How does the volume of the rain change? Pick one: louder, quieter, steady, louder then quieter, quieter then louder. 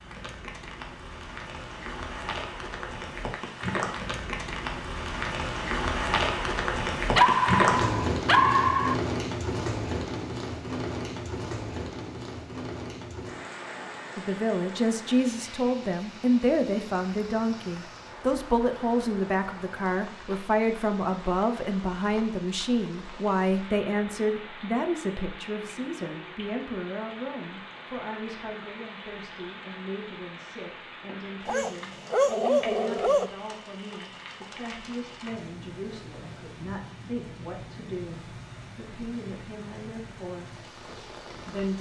quieter.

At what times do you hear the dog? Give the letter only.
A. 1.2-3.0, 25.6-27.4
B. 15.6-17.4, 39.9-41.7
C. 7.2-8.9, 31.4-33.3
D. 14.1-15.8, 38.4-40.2
C.